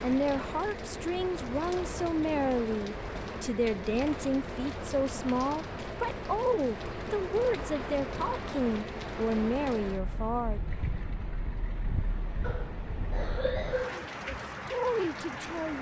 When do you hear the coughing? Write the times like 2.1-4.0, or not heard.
12.4-14.1.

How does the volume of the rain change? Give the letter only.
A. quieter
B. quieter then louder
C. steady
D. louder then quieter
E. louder
C.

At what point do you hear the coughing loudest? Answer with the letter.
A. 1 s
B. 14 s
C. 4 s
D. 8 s
B.